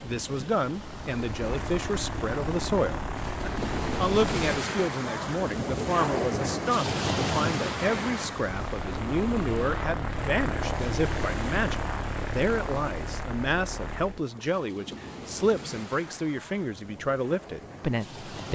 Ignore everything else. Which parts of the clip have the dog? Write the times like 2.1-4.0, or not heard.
not heard.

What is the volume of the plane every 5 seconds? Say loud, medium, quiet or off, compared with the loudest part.
loud, loud, loud, off.